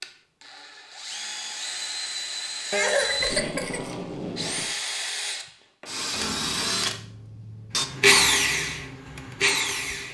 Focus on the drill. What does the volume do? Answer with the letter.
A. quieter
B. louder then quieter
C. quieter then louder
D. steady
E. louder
E.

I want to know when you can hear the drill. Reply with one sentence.
The drill can be heard from 0.0 to 10.1 s.